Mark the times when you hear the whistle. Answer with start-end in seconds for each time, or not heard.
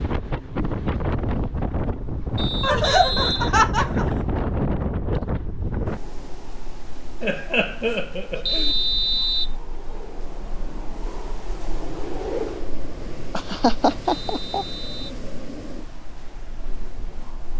2.4-3.6, 8.4-9.6, 14.1-15.2.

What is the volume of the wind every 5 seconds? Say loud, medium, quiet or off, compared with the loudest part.
loud, medium, medium, quiet.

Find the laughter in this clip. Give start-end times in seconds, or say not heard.
2.6-4.2, 7.2-8.8, 13.3-14.7.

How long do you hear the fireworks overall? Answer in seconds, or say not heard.
not heard.